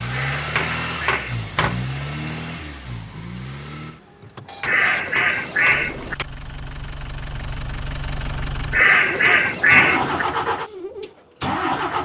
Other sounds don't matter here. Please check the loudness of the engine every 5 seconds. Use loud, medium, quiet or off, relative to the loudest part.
medium, medium, loud.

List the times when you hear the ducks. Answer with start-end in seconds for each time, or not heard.
0.1-1.6, 4.7-6.2, 8.7-10.2.